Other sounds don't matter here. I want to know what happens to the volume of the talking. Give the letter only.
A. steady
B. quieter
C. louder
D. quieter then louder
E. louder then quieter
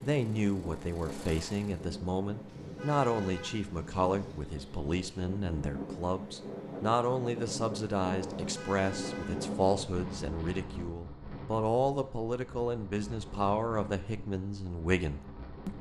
A.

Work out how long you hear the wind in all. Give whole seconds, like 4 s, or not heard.
16 s.